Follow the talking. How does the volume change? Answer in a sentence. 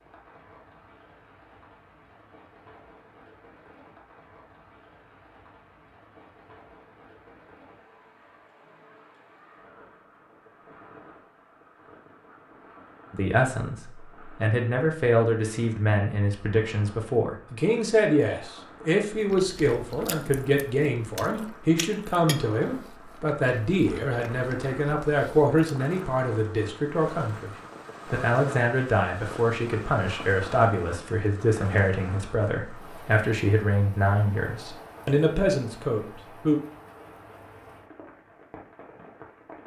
The loudness of the talking stays about the same.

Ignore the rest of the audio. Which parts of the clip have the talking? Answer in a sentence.
You can hear the talking from 13.1 to 36.6 s.